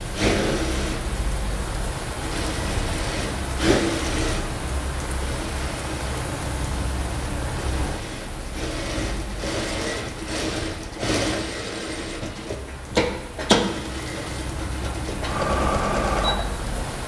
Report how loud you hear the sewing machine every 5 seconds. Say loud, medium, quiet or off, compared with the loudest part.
loud, medium, loud, loud.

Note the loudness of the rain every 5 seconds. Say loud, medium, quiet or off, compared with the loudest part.
loud, loud, medium, loud.